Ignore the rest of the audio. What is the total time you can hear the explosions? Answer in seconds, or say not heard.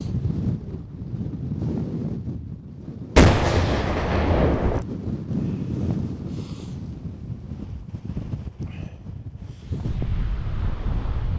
2 s.